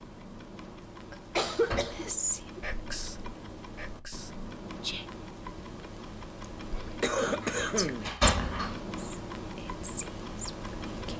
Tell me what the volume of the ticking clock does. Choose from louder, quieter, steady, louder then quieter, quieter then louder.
louder.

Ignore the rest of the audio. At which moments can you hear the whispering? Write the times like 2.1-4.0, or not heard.
1.8-5.0, 6.7-11.1.